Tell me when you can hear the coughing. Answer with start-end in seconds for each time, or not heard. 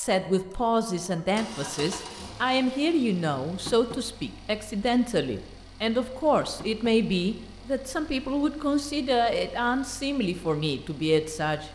not heard.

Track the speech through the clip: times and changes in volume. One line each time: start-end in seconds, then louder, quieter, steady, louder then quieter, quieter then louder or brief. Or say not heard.
0.0-11.6 steady.